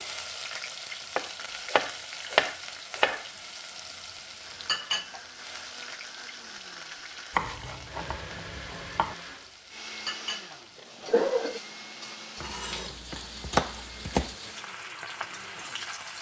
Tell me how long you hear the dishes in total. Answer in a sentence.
The dishes can't be heard in this clip.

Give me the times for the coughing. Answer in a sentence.
The coughing can be heard from 10.8 to 11.6 s.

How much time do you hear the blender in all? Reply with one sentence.
You can hear the blender for 12 seconds altogether.